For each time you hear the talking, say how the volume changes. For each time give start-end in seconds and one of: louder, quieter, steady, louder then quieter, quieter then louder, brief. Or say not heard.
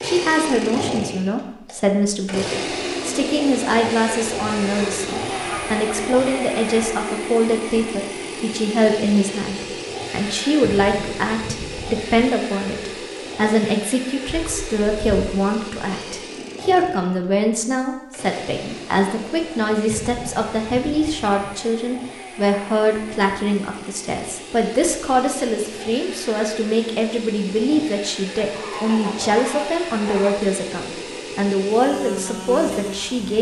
0.0-33.3 steady.